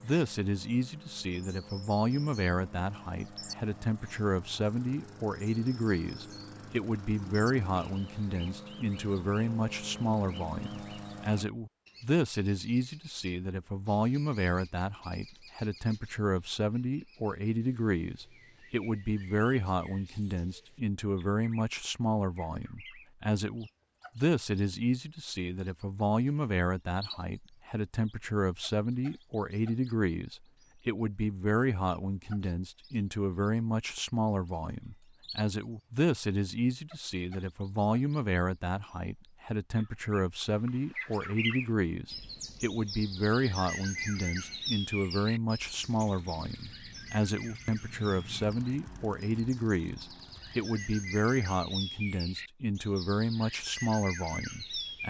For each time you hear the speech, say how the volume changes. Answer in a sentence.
You can hear the speech from 0.0 to 55.0 s, at a steady volume.